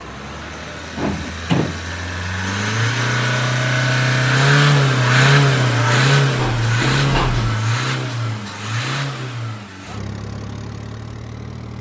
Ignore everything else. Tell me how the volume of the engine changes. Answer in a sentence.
The volume of the engine goes up, then down.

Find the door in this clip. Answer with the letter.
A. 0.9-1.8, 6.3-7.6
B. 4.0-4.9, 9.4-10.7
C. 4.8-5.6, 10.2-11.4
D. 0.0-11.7
A.